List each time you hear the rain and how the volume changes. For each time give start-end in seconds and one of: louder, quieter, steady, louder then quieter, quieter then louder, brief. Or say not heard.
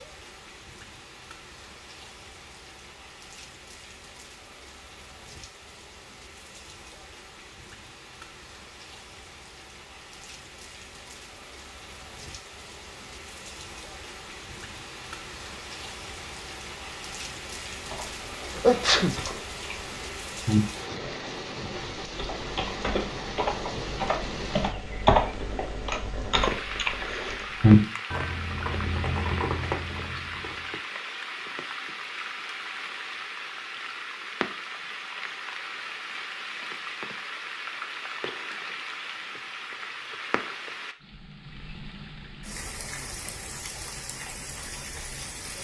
0.0-45.5 louder.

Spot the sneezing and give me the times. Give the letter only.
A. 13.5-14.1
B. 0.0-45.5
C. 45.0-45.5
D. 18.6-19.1
D.